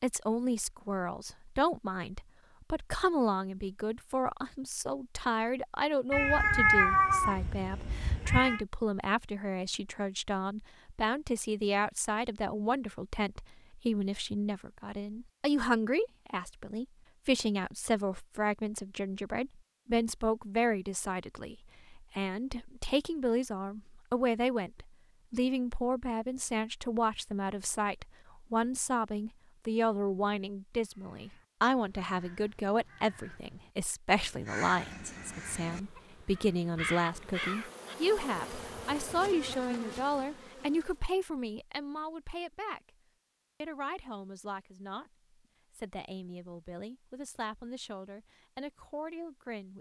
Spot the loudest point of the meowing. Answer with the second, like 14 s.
7 s.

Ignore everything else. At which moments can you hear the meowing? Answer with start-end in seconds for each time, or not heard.
6.1-8.6.